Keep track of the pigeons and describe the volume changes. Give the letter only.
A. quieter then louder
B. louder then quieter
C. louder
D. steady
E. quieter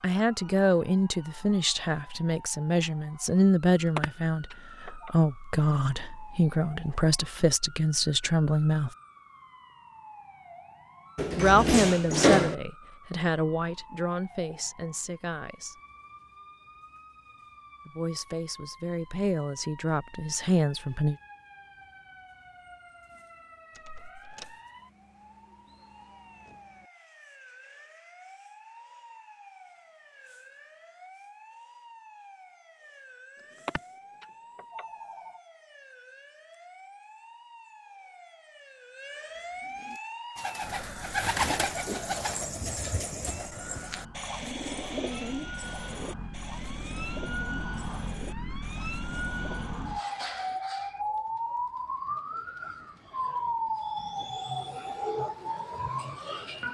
E.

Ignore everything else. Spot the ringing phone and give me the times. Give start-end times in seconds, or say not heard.
3.9-5.2, 33.5-35.4.